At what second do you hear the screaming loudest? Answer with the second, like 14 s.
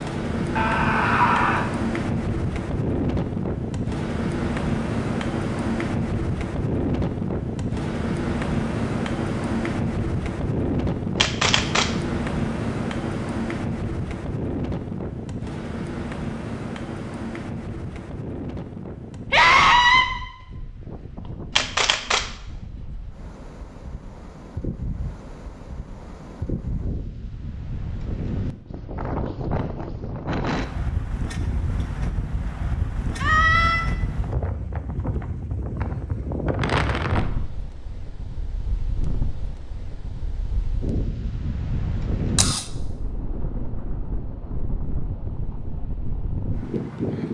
20 s.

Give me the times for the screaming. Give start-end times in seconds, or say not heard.
0.6-1.6, 19.3-20.1, 33.2-33.9.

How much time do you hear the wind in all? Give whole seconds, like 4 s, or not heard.
47 s.